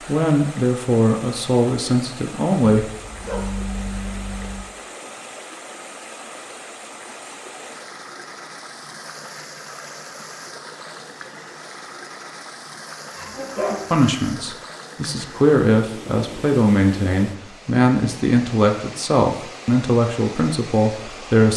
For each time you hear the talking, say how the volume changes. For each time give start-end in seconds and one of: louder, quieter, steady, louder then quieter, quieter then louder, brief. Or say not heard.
0.1-2.9 brief
13.9-21.5 steady.